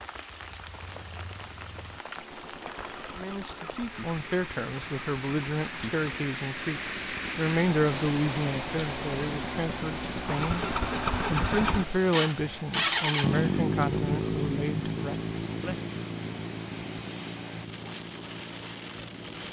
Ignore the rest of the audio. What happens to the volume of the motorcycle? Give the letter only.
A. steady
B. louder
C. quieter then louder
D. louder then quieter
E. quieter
D.